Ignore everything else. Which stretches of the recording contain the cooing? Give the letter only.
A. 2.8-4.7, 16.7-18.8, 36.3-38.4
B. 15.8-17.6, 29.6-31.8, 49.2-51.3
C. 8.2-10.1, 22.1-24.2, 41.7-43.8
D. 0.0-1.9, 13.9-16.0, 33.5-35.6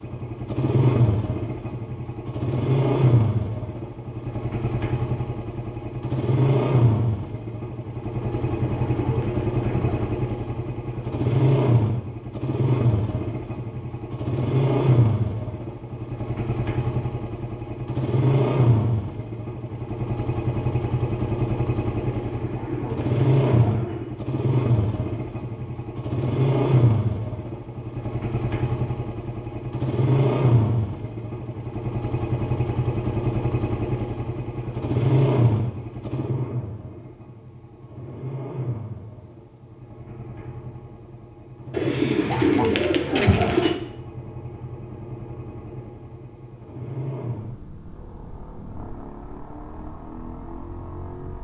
C.